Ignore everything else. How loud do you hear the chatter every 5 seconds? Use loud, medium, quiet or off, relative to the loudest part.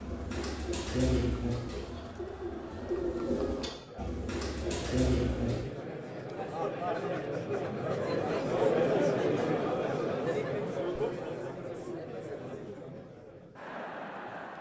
quiet, loud, medium.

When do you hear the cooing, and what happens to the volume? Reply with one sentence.
The cooing can be heard from 0.0 to 5.7 s, getting quieter then louder.